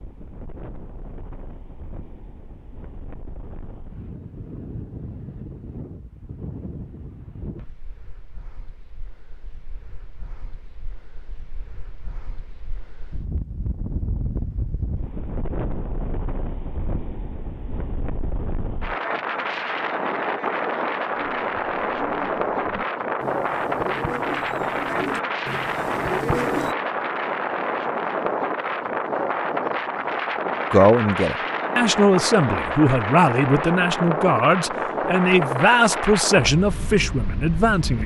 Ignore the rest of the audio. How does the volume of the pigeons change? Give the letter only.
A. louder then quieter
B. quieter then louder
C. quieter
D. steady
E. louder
E.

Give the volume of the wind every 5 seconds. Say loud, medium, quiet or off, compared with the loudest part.
quiet, quiet, quiet, medium, loud, loud, loud, loud.